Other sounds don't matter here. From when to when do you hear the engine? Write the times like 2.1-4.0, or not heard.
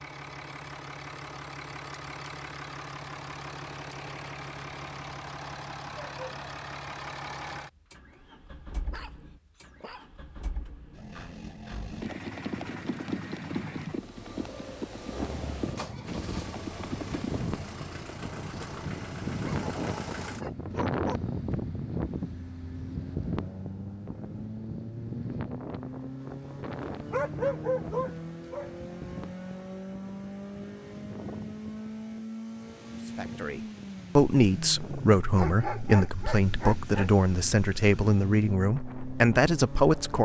0.0-40.2.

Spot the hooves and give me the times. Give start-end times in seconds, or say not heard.
11.9-17.4.